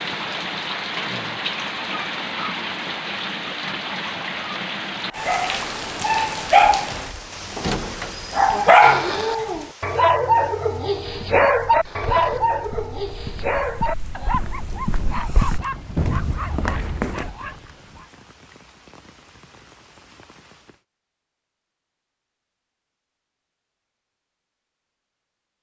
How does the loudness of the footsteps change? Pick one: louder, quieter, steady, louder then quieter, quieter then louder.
louder.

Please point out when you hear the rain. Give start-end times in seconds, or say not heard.
0.0-20.8.